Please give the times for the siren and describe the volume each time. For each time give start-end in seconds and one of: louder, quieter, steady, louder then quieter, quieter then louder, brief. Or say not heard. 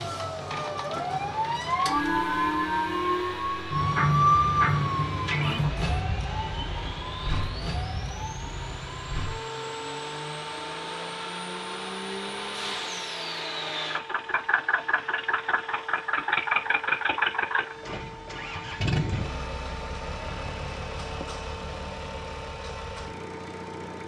0.0-24.0 quieter.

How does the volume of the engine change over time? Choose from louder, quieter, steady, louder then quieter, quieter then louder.
louder then quieter.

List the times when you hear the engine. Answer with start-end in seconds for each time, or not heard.
0.0-24.0.